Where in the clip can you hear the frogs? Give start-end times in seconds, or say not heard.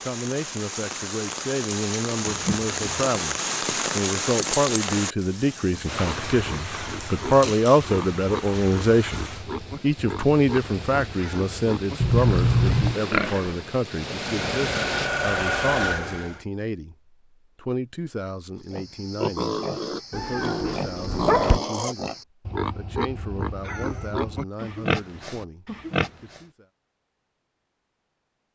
not heard.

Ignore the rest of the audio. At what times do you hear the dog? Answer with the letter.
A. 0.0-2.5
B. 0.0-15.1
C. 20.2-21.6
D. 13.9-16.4
C.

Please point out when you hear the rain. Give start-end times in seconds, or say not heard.
0.0-15.1.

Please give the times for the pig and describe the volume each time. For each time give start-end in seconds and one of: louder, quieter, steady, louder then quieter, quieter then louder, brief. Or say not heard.
5.9-13.6 steady
18.6-26.4 steady.